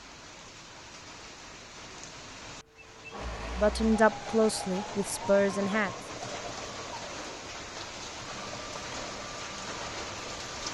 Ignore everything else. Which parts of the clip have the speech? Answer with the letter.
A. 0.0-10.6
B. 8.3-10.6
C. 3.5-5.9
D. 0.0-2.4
C.